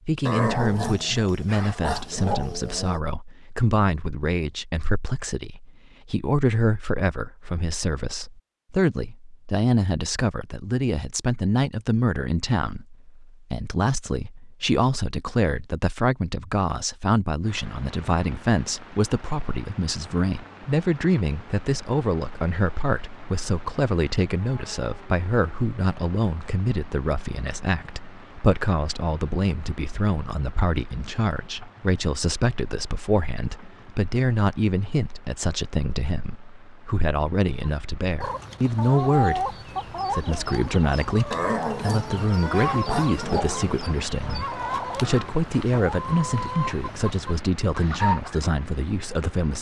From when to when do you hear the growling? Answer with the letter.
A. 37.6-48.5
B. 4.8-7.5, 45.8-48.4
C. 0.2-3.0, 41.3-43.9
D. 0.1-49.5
C.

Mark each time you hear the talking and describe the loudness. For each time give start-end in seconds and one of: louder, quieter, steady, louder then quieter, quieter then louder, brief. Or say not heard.
0.1-49.5 steady.